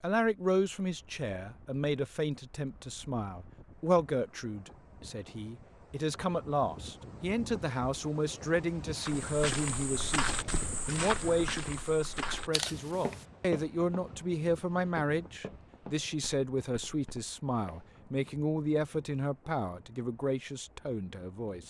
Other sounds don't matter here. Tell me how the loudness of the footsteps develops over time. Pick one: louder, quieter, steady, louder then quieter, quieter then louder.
quieter.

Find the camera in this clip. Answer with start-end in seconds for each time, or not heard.
12.5-13.2.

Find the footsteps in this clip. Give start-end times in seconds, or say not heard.
9.0-17.9.